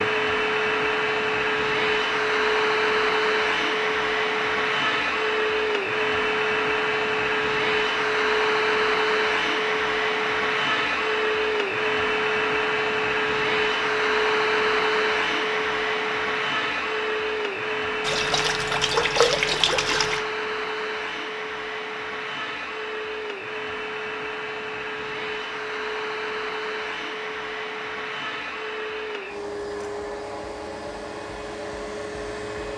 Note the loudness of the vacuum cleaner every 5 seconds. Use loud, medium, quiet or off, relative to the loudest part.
loud, loud, loud, loud, medium, medium, medium.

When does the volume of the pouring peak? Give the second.
19 s.